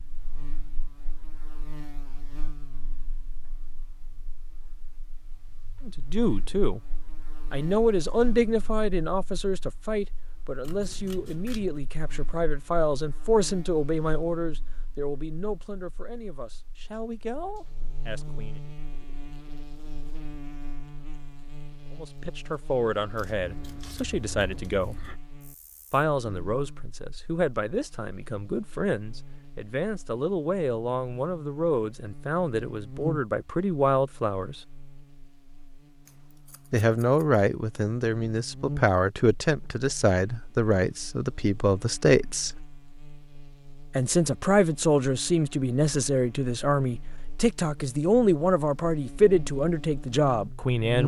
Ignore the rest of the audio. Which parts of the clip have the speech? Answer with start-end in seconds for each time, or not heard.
5.8-6.8, 7.5-18.6, 21.9-25.0, 25.9-34.6, 36.7-42.6, 44.0-51.0.